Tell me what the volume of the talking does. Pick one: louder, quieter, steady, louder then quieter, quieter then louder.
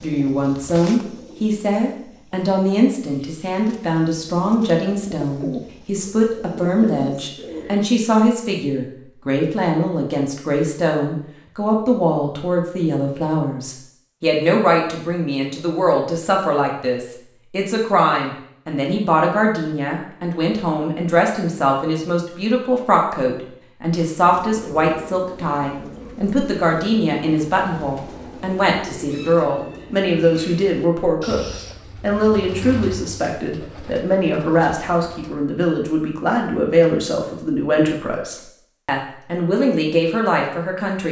steady.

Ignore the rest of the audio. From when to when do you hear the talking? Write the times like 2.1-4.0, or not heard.
0.0-41.0.